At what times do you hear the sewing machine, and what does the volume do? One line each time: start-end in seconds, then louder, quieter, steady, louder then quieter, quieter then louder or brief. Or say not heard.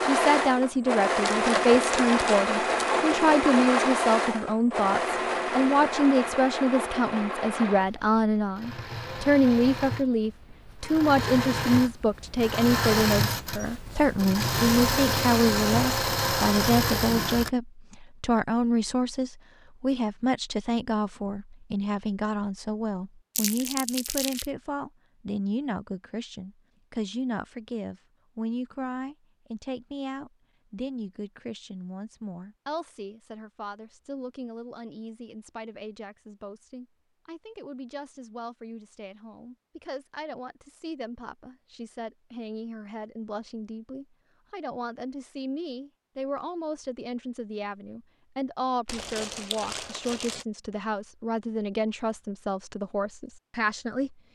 0.0-17.5 quieter then louder.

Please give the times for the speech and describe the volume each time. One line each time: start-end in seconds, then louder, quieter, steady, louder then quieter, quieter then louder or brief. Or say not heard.
0.0-54.1 quieter then louder.